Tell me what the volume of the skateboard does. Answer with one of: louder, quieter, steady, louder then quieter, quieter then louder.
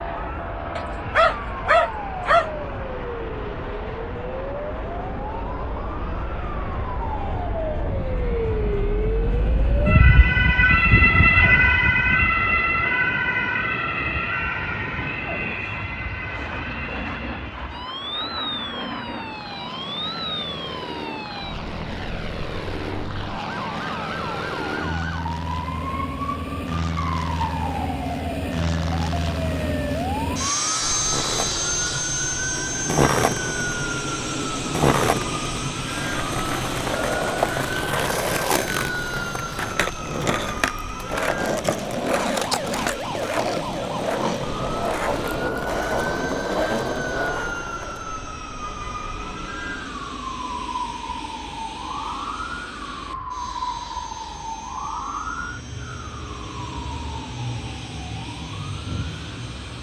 steady.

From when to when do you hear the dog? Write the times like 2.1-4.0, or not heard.
0.8-2.5.